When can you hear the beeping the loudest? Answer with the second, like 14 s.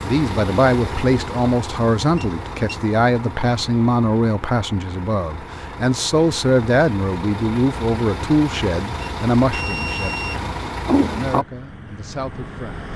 10 s.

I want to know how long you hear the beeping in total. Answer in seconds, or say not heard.
2 s.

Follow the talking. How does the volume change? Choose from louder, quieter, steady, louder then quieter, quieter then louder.
quieter.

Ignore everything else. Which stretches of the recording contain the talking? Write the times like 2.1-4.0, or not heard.
0.0-12.9.